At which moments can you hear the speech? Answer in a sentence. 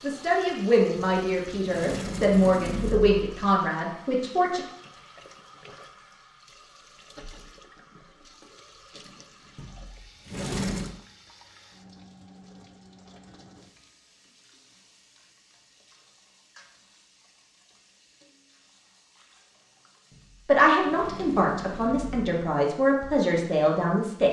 You can hear the speech from 0.0 to 4.6 s and from 20.4 to 24.2 s.